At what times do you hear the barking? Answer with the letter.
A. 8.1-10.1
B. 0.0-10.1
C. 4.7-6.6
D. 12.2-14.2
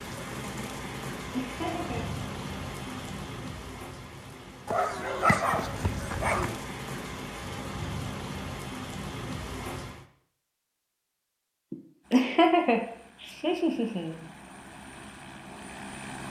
C.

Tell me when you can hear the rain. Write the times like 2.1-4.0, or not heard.
0.0-10.1.